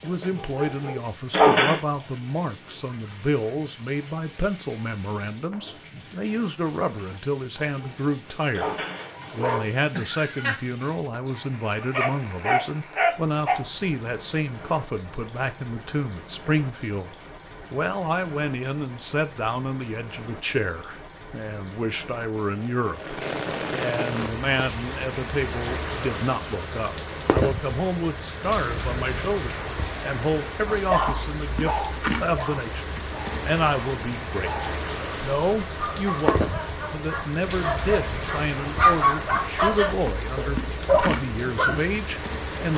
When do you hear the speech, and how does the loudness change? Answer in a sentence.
You can hear the speech from 0.0 to 32.9 s, at a steady volume; and from 33.5 to 42.7 s, at a steady volume.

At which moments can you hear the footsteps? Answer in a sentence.
You can't hear the footsteps here.